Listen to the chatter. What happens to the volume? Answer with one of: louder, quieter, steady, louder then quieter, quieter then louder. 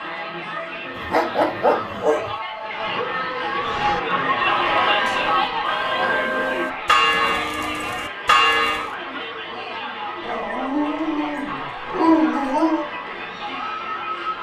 louder then quieter.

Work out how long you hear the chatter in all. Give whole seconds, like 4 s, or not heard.
14 s.